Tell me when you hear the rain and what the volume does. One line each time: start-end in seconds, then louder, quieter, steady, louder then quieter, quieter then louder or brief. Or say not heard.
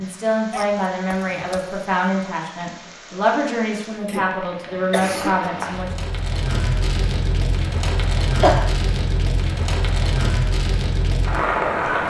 0.0-12.0 louder.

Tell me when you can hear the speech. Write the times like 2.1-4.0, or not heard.
0.0-5.9.